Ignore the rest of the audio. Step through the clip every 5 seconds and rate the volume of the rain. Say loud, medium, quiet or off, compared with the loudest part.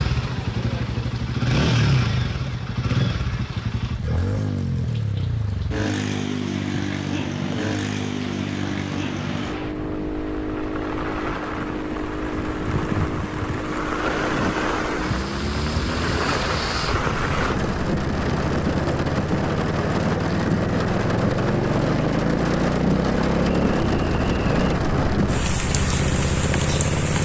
quiet, quiet, loud, loud, loud, loud.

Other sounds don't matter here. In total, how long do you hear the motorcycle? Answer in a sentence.
You can hear the motorcycle for 27 seconds altogether.